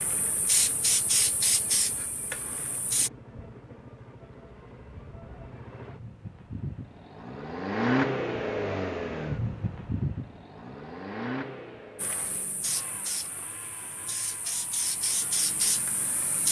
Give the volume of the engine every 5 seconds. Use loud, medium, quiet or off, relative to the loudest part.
quiet, loud, medium, quiet.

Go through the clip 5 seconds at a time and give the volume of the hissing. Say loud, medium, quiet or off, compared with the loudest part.
loud, off, medium, loud.